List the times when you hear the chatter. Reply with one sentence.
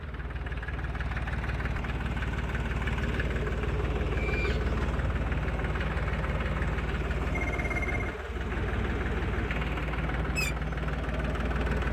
The chatter can't be heard in this clip.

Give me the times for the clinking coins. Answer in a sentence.
The clinking coins can't be heard in this clip.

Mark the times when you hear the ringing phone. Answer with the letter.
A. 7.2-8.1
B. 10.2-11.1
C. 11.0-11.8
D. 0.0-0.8
A.